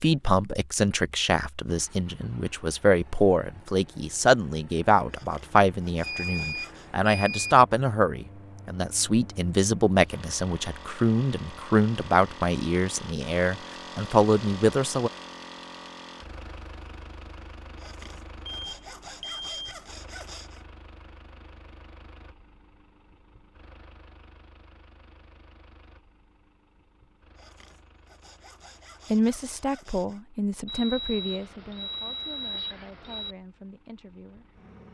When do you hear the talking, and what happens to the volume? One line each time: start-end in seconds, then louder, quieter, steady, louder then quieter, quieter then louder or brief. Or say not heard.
0.0-15.1 steady
29.1-34.5 quieter.